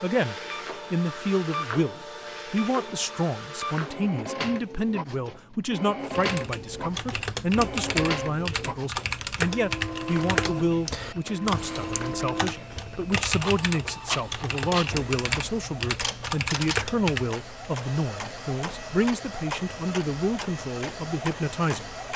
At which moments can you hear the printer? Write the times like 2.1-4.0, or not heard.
0.0-22.1.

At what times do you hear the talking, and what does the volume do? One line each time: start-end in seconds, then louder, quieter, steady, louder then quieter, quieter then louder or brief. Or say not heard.
0.0-21.9 steady.